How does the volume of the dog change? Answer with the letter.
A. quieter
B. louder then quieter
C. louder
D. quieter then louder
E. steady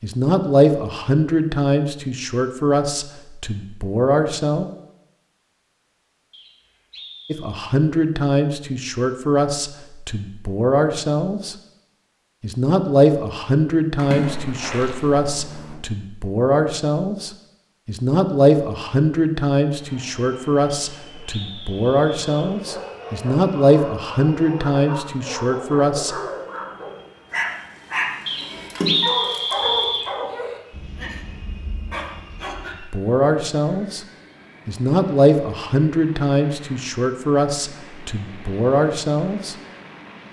B.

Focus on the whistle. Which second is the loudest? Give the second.
29 s.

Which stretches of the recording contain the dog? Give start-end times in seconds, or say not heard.
22.2-32.8.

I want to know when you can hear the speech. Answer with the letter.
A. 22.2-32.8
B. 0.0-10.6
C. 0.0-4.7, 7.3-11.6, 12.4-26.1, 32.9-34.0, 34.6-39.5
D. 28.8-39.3
C.